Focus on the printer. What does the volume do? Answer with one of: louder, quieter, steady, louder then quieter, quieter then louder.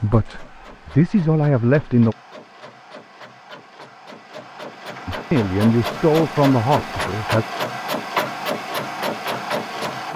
louder.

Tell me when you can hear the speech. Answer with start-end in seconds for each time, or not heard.
0.0-2.1, 5.0-7.5.